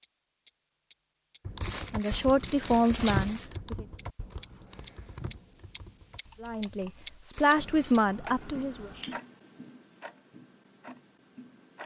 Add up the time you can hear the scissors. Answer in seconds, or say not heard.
3 s.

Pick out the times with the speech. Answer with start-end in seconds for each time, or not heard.
1.9-3.9, 6.4-8.9.